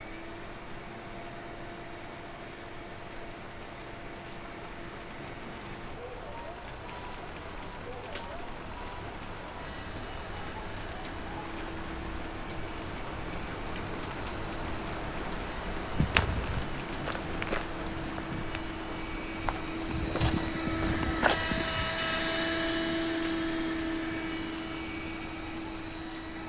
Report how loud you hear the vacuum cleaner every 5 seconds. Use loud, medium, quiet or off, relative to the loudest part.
quiet, quiet, quiet, medium, loud, medium.